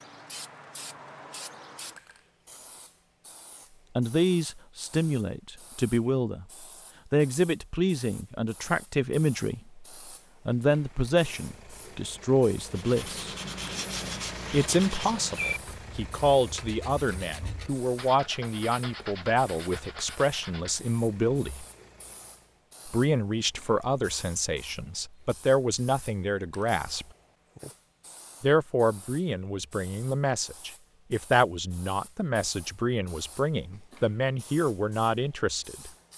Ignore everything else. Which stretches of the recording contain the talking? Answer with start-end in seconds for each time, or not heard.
4.0-6.5, 7.1-9.8, 10.4-13.2, 14.5-21.6, 22.9-27.1, 28.4-35.9.